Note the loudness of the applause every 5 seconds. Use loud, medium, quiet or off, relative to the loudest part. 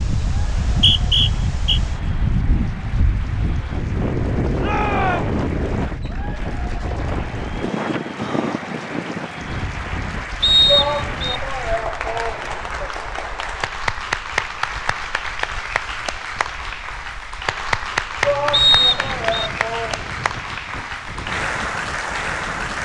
quiet, medium, loud, loud, loud.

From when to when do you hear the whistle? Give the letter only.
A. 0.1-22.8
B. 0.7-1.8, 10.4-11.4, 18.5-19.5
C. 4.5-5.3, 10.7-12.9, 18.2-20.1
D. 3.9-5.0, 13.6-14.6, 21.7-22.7
B.